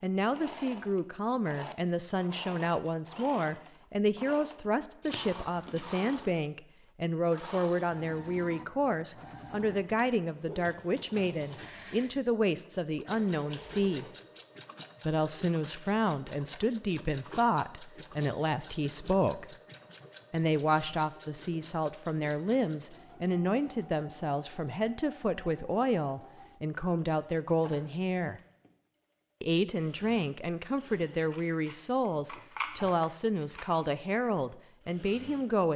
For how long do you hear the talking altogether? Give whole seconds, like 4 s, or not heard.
33 s.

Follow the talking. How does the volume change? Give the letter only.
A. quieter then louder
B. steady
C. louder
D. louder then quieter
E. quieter
B.